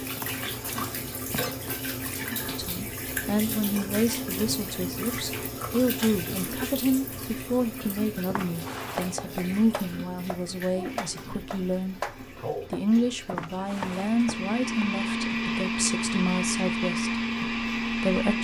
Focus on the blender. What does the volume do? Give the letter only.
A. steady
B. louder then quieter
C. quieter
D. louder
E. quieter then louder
A.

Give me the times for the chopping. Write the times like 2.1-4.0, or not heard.
8.8-14.8.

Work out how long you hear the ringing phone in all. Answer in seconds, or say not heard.
3 s.